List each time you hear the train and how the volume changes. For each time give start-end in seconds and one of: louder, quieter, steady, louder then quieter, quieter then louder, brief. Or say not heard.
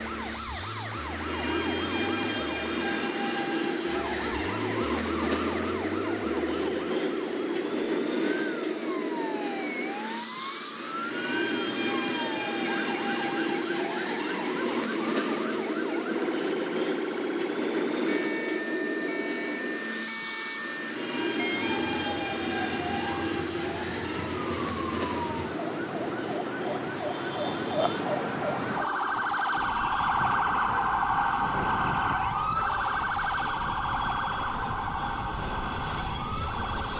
0.0-36.9 quieter.